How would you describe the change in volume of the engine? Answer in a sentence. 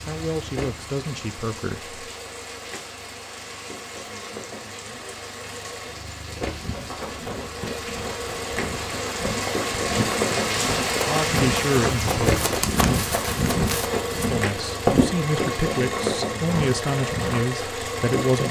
The volume of the engine goes up.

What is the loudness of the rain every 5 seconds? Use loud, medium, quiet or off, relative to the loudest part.
medium, medium, loud, medium.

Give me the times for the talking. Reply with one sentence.
The talking can be heard from 0.1 to 1.9 s, from 11.1 to 12.4 s and from 14.3 to 18.4 s.